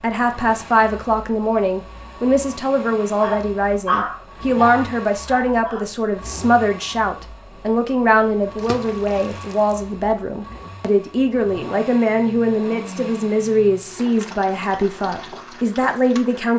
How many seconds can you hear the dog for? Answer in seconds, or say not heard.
3 s.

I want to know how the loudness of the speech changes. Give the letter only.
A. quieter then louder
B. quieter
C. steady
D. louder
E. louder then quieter
C.